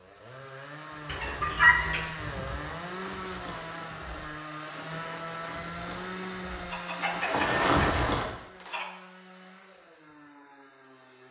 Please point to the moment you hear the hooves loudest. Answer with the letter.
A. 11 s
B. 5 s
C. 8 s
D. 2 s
C.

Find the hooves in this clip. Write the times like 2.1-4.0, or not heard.
0.8-8.4.